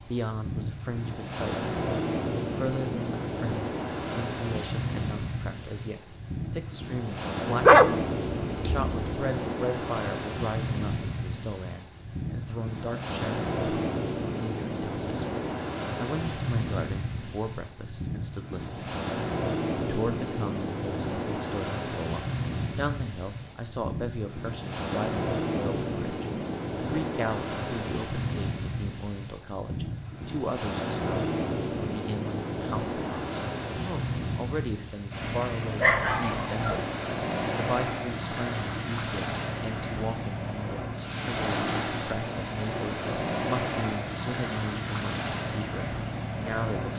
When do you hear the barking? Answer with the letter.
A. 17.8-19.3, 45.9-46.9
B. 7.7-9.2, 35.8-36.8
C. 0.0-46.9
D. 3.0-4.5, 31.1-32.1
B.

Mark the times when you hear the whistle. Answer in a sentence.
You can't hear the whistle here.